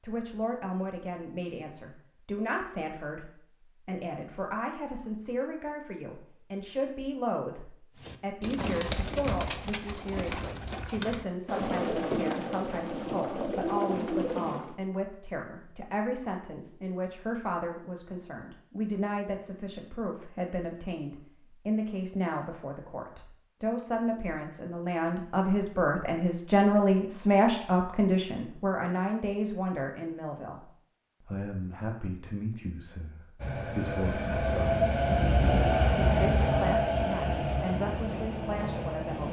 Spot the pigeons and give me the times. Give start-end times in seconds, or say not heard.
8.0-14.8.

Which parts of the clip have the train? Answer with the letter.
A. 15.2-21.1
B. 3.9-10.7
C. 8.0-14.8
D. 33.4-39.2
D.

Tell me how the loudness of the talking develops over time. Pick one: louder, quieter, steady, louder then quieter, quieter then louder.
louder then quieter.